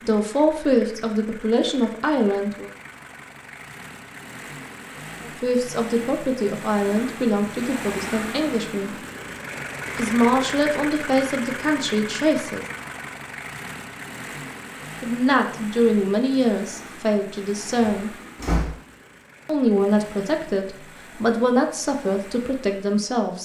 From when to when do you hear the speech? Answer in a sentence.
The speech can be heard from 0.0 to 2.7 s, from 5.2 to 9.0 s, from 9.9 to 12.7 s, from 15.0 to 18.1 s and from 19.4 to 23.4 s.